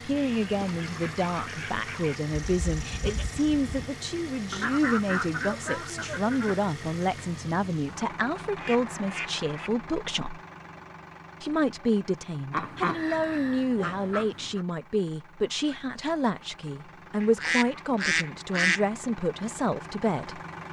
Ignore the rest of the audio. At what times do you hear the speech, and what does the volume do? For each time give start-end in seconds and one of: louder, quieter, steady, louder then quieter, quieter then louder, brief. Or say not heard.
0.1-10.4 steady
11.4-20.4 steady.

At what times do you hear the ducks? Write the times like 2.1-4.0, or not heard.
0.1-2.2, 4.5-6.7, 8.6-9.7, 12.5-14.7, 17.2-18.9.